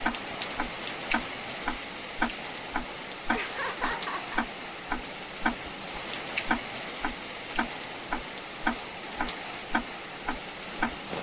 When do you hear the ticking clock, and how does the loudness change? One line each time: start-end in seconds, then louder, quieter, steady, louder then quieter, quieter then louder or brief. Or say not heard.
0.0-10.9 steady.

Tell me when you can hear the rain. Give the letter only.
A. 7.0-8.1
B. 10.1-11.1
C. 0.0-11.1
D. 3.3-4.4
C.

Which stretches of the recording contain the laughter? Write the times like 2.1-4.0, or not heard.
3.3-4.4.